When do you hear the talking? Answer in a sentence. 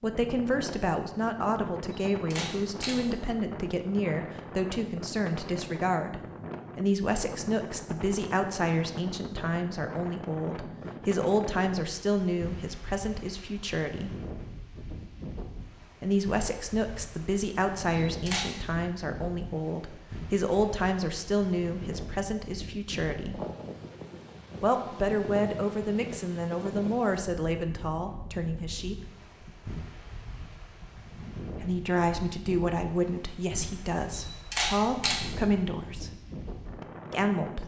You can hear the talking from 0.0 to 14.2 s, from 16.0 to 23.4 s, from 24.6 to 29.1 s, from 31.6 to 36.1 s and from 37.1 to 37.6 s.